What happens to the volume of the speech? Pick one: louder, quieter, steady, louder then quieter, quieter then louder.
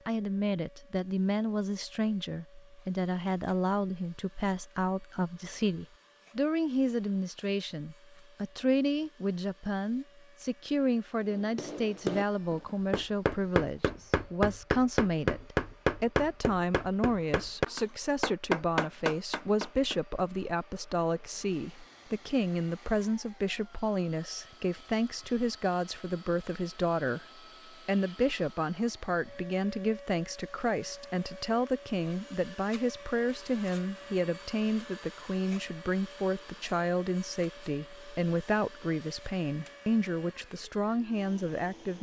steady.